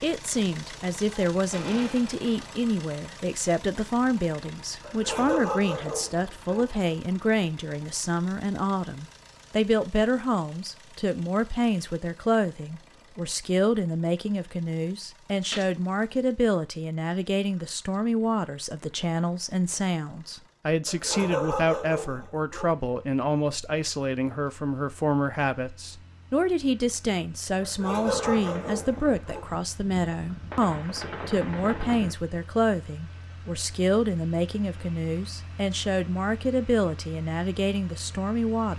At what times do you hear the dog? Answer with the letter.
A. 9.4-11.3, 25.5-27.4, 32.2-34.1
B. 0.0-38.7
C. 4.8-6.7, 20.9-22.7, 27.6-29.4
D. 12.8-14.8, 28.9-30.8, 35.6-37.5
C.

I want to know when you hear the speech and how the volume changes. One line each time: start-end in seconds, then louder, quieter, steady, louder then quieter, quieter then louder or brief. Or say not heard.
0.0-38.7 steady.